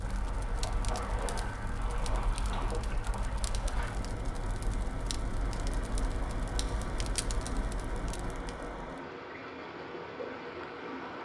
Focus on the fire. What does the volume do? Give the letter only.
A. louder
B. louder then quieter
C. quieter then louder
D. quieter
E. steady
E.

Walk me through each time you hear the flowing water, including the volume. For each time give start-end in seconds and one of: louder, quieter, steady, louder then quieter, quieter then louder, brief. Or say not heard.
0.0-11.2 steady.